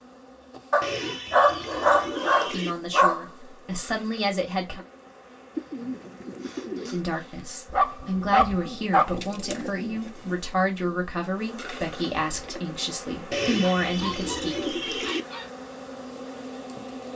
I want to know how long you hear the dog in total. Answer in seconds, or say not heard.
6 s.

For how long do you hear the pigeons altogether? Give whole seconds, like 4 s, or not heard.
7 s.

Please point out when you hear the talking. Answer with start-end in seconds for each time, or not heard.
2.5-4.8, 6.9-14.8.